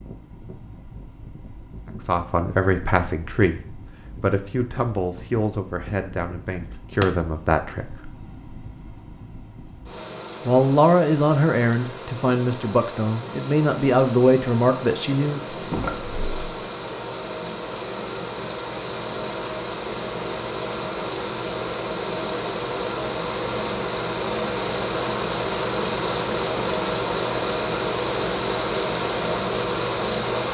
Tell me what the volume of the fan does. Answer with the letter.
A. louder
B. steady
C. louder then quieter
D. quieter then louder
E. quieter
A.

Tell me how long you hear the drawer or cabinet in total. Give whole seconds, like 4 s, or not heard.
2 s.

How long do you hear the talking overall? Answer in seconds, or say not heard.
11 s.